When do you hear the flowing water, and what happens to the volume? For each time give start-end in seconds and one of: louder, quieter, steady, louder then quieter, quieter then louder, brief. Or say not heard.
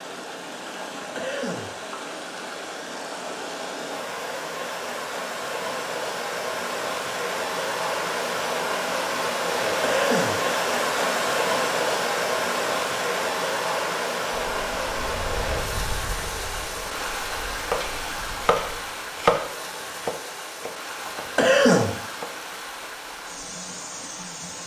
0.0-24.6 louder then quieter.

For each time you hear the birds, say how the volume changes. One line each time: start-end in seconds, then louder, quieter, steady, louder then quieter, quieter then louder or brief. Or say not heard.
not heard.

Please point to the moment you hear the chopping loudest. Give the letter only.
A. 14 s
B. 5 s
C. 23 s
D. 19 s
D.